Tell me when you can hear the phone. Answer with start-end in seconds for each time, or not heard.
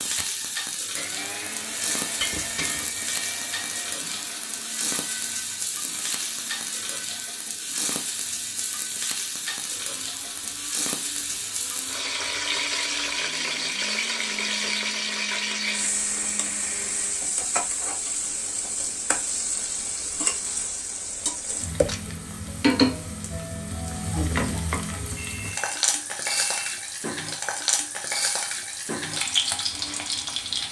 25.1-26.8.